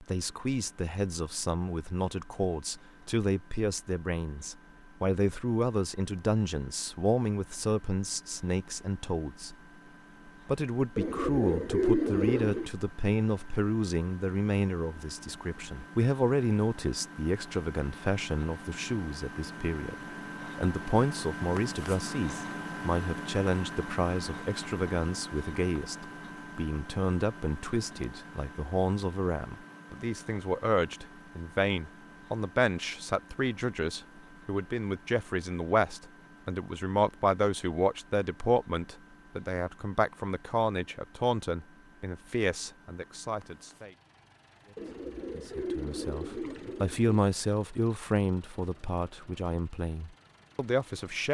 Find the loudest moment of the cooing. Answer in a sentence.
The volume of the cooing peaks at 12 seconds.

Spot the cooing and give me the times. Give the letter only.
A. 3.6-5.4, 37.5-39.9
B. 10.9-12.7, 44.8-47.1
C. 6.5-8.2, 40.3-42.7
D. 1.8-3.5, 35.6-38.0
B.